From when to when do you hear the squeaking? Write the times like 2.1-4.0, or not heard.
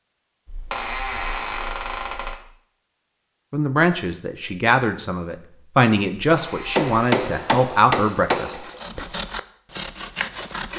0.5-2.4, 6.2-7.3.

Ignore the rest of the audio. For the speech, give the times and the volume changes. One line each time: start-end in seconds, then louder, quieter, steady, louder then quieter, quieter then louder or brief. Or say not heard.
3.5-9.1 steady.